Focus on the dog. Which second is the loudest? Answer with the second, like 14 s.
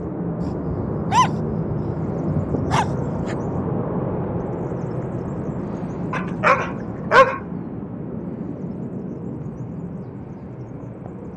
7 s.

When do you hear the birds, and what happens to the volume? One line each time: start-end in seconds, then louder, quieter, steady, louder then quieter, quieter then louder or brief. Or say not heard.
0.0-11.3 quieter.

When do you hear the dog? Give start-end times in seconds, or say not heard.
0.4-3.4, 6.1-7.4.